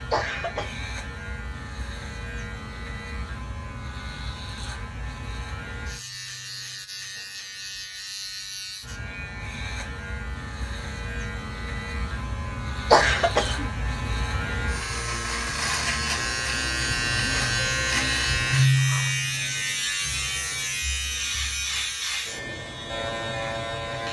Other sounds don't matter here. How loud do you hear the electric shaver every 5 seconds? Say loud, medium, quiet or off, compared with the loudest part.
quiet, quiet, medium, loud, medium.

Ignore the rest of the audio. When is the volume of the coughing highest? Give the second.
13 s.